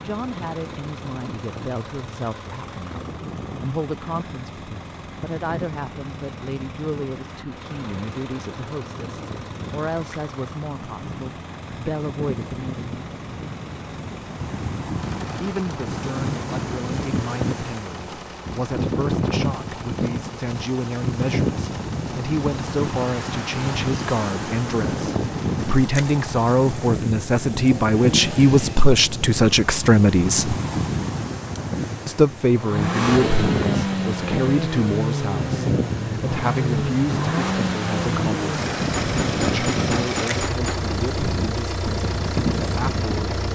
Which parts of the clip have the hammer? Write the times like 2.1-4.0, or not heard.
38.8-40.8.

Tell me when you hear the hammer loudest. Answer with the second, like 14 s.
40 s.